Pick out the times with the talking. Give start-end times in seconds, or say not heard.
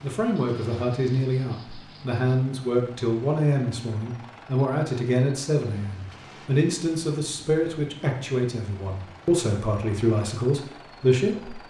0.0-11.6.